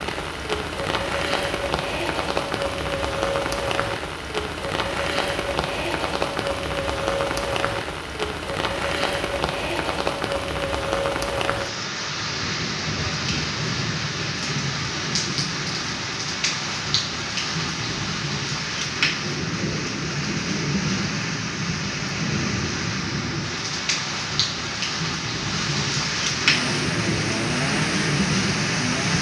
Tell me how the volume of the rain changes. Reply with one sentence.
The volume of the rain stays about the same.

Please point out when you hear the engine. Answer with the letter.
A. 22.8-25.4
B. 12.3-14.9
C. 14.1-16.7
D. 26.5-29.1
D.